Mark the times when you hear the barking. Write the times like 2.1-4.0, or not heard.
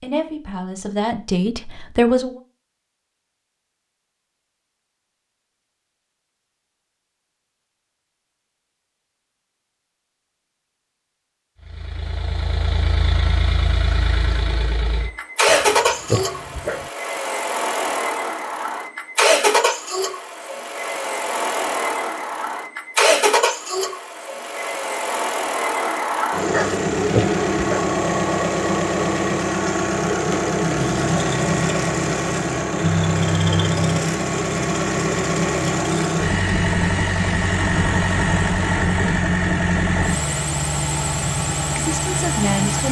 15.4-16.9, 26.5-27.9.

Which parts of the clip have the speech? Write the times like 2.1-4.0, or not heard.
0.0-2.4, 41.8-42.8.